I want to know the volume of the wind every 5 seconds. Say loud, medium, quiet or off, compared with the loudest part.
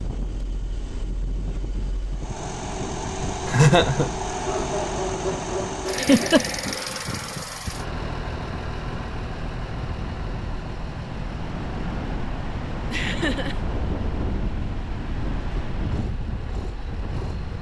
medium, medium, loud, loud.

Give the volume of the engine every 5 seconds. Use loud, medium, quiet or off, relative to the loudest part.
loud, loud, medium, medium.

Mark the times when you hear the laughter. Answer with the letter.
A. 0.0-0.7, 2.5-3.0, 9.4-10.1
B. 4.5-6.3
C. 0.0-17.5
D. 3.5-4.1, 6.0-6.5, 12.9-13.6
D.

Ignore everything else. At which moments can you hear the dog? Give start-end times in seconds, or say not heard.
4.5-6.3.